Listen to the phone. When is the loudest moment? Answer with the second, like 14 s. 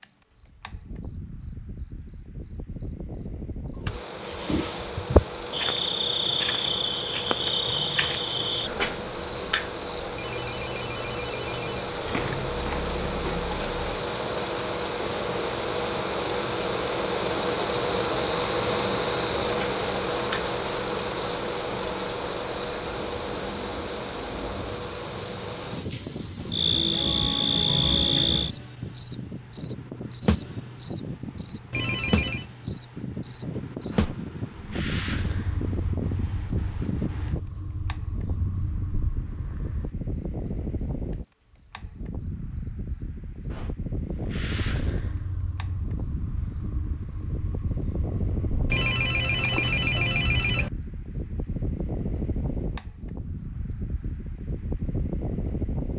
50 s.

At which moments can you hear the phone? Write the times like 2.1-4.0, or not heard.
10.2-11.9, 31.7-32.5, 48.6-50.7.